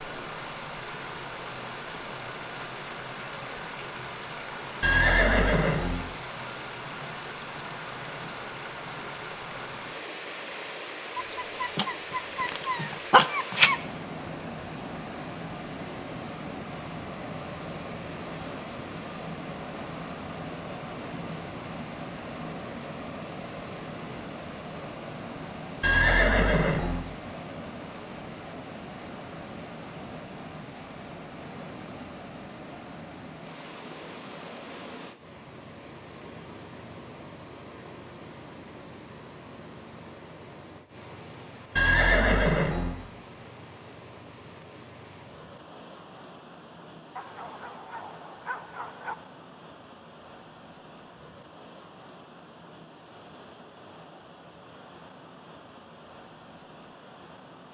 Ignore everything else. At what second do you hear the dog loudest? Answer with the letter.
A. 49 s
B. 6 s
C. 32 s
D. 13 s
D.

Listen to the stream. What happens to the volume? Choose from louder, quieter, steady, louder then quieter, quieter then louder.
quieter.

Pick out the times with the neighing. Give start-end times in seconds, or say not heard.
4.8-6.0, 25.8-27.1, 41.8-43.0.